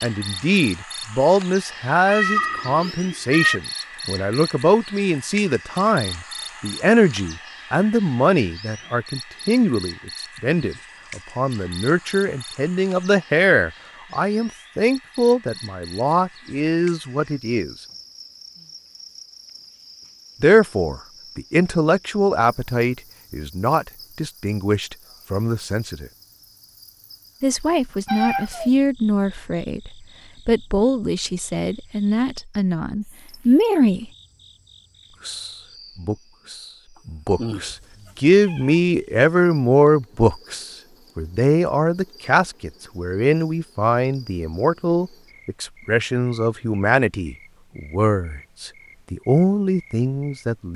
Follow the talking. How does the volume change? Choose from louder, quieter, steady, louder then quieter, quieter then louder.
steady.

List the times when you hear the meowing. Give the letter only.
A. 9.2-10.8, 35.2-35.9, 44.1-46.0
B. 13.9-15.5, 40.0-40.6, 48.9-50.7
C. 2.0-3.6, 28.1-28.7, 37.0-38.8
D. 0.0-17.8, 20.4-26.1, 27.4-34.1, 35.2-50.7
C.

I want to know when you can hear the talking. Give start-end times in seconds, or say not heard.
0.0-17.8, 20.4-26.1, 27.4-34.1, 35.2-50.7.